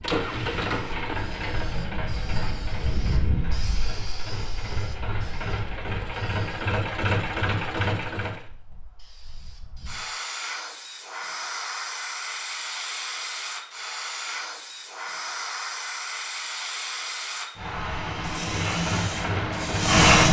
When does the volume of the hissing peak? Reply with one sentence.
The volume of the hissing peaks at 20 seconds.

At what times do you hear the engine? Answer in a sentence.
You can hear the engine from 0.0 to 8.4 s and from 18.4 to 19.9 s.